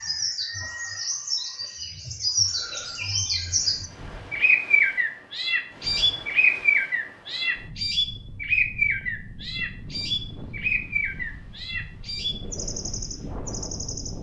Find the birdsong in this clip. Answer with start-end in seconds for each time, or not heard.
0.0-14.1.